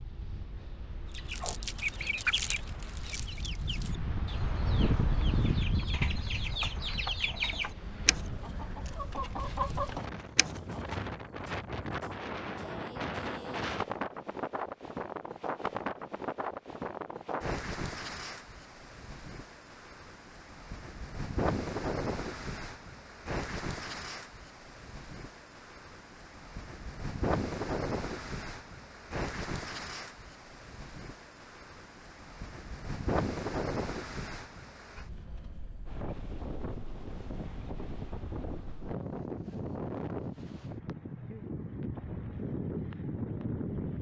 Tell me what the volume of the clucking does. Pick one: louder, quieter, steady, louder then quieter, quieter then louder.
quieter then louder.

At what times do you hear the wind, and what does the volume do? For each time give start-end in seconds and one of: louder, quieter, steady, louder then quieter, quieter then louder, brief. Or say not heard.
0.0-43.9 steady.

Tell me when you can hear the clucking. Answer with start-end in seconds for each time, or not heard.
1.1-11.1.